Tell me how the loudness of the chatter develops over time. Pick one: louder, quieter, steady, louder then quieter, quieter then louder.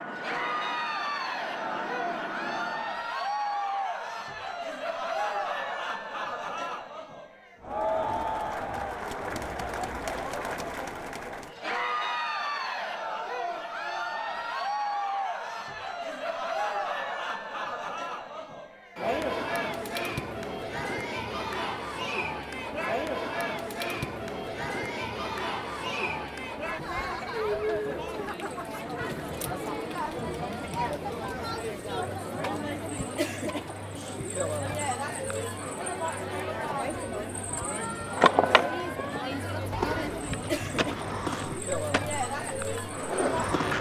steady.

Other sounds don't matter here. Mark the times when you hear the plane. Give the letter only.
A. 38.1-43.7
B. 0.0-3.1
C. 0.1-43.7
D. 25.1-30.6
B.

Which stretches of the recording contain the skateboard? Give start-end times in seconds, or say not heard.
38.1-43.7.